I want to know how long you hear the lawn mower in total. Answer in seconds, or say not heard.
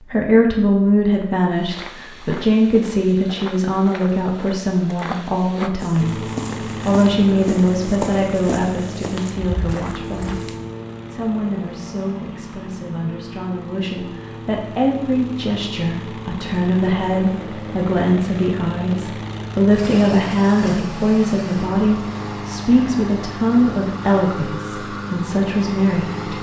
20 s.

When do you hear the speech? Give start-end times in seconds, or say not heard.
0.0-6.2, 6.8-26.3.